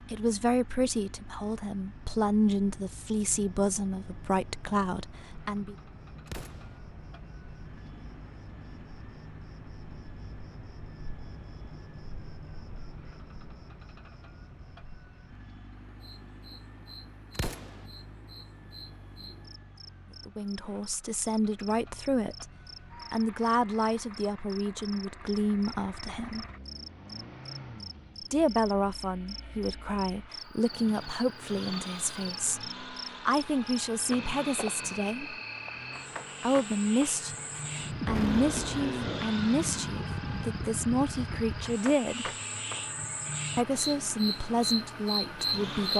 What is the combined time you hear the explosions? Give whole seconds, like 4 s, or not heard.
2 s.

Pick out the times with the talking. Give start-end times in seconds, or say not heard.
0.1-5.8, 20.2-22.5, 23.1-26.4, 28.2-35.4, 36.4-42.3, 43.5-45.9.